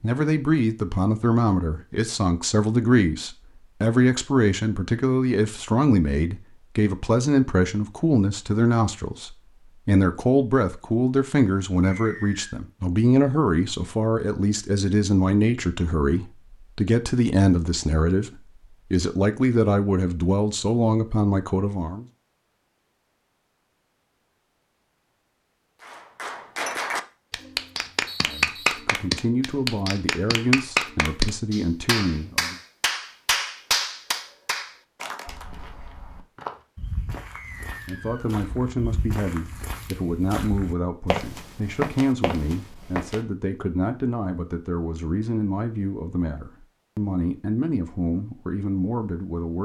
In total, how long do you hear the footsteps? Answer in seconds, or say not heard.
8 s.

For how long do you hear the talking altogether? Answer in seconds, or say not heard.
38 s.